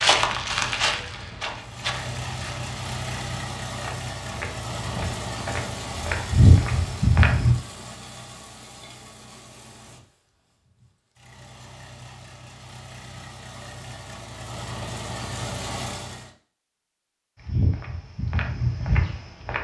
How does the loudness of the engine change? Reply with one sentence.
The loudness of the engine goes down, then up.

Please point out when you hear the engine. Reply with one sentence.
The engine can be heard from 1.5 to 16.3 s.